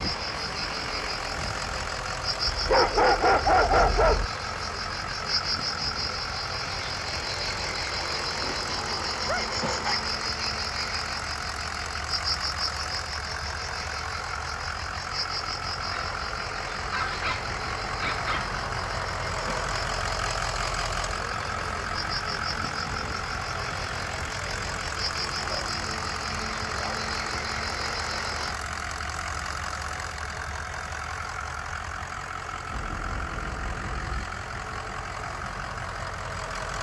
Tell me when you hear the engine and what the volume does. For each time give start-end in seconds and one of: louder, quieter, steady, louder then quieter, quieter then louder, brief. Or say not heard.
0.0-36.7 steady.